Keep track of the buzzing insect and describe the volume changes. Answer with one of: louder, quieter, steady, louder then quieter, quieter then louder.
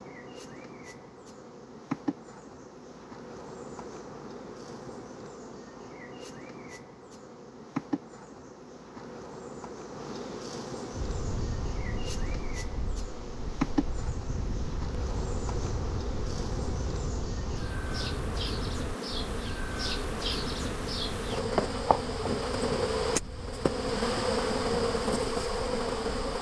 louder.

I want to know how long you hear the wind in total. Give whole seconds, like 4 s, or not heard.
15 s.